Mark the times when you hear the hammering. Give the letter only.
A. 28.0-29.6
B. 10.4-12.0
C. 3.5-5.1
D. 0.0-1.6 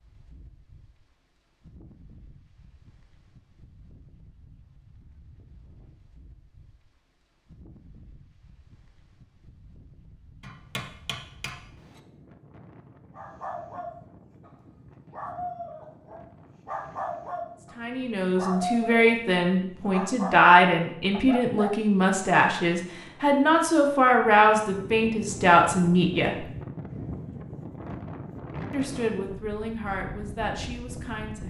B.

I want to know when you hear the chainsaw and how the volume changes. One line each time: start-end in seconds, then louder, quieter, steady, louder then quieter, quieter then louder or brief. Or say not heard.
not heard.